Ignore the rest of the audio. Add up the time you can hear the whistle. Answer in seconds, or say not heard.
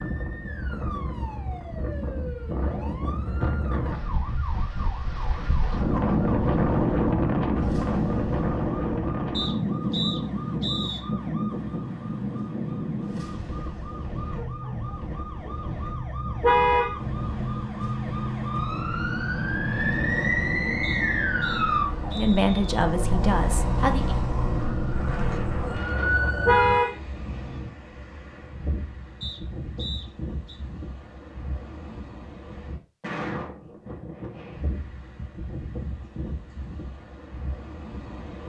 5 s.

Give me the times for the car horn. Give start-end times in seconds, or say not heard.
16.4-17.6, 26.4-27.7.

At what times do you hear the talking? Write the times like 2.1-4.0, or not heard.
22.1-24.1.